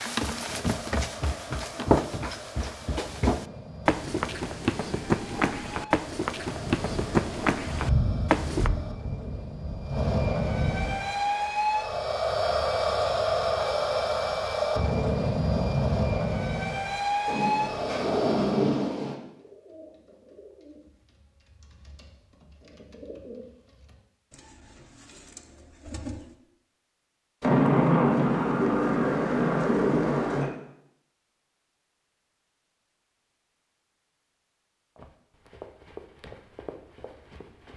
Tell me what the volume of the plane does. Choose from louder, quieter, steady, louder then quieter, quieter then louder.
louder.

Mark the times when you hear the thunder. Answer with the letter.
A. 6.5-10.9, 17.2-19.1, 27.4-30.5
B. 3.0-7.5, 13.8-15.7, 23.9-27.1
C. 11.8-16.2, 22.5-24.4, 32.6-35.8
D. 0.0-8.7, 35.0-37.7
A.